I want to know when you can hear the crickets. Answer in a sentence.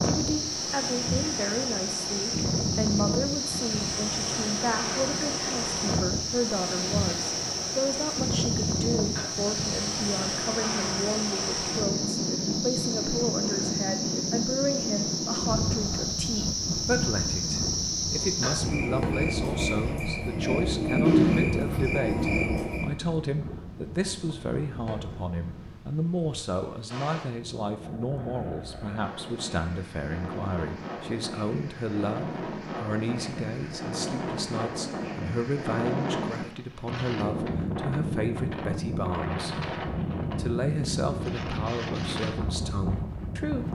You can hear the crickets from 0.0 to 22.9 s.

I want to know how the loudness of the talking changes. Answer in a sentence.
The volume of the talking stays about the same.